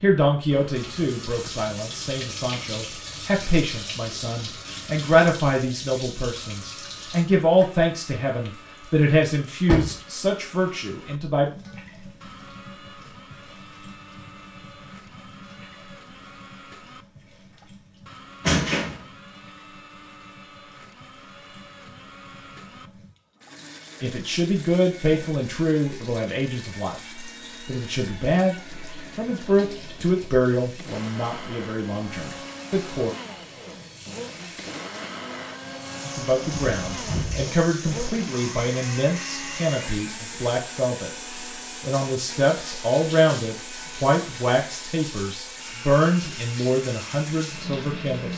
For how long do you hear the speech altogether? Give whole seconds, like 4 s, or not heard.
32 s.